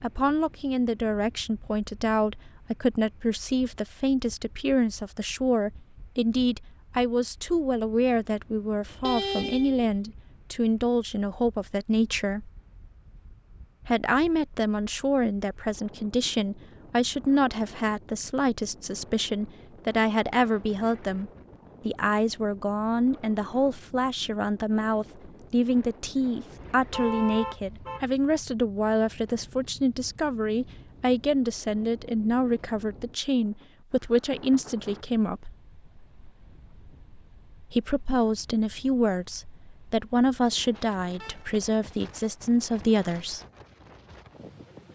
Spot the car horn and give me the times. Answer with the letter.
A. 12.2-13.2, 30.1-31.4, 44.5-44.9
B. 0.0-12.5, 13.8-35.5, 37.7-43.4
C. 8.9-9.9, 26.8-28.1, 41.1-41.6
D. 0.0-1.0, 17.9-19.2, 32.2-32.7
C.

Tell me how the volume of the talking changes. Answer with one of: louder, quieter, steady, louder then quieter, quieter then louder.
steady.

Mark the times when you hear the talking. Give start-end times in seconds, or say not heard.
0.0-12.5, 13.8-35.5, 37.7-43.4.